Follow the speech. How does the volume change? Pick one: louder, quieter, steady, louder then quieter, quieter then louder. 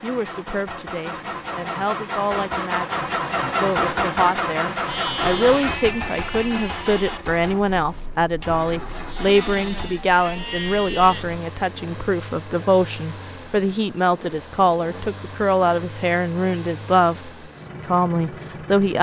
louder.